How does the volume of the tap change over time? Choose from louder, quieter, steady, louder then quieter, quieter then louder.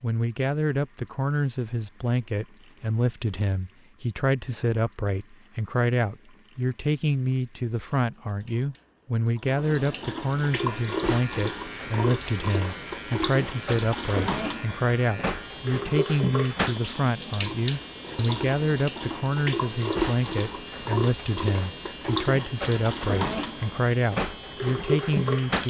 louder.